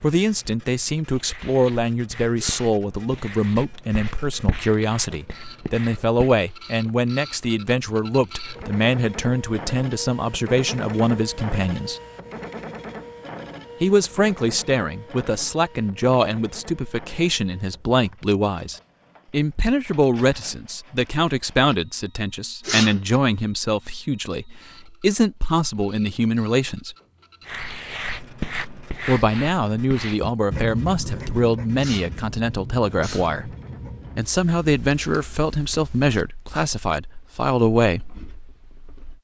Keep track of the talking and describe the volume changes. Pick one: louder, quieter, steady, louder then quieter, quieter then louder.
steady.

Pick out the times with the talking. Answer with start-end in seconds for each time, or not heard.
0.0-12.0, 13.8-26.9, 29.1-33.5, 34.1-38.1.